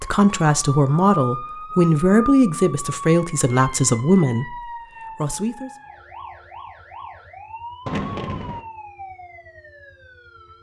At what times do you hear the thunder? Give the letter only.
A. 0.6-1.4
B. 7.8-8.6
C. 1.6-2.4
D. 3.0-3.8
B.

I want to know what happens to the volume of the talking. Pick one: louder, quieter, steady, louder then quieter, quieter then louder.
quieter.